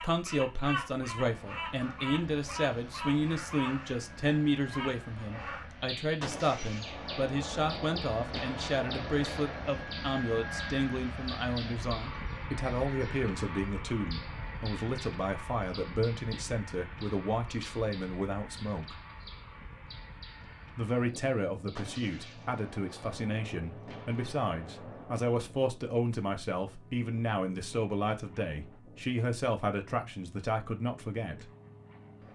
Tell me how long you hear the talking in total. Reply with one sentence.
You can hear the talking for 30 seconds altogether.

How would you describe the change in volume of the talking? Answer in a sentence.
The loudness of the talking stays about the same.